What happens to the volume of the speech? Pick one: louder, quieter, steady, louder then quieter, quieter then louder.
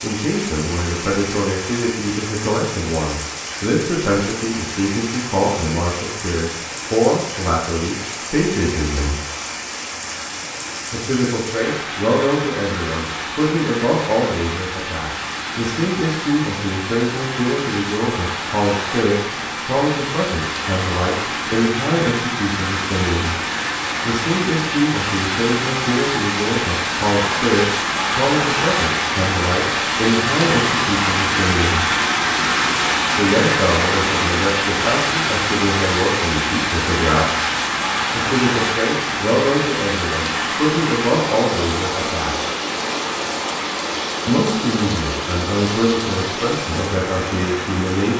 steady.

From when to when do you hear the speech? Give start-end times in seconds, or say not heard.
0.0-9.2, 10.9-23.4, 24.0-31.9, 33.1-37.3, 38.1-42.5, 44.2-48.1.